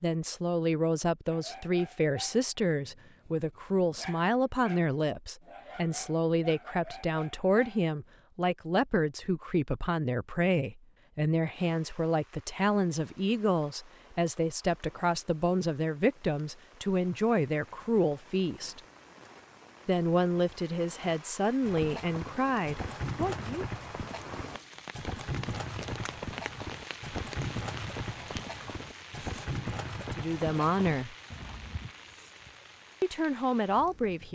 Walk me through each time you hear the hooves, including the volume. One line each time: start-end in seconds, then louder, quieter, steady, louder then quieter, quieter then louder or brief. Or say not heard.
21.6-31.9 steady.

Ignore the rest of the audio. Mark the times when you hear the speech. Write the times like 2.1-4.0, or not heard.
0.0-18.8, 19.9-23.6, 30.1-31.1, 33.0-34.3.